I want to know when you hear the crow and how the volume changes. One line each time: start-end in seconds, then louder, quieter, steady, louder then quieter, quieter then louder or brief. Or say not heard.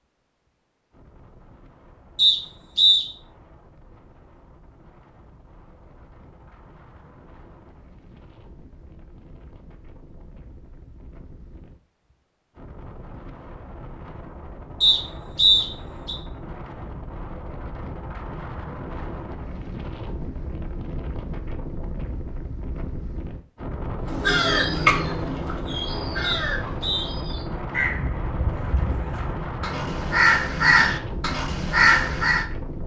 24.1-32.5 quieter then louder.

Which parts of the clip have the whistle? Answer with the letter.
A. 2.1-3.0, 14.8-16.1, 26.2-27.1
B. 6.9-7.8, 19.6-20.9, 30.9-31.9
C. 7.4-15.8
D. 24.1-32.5
A.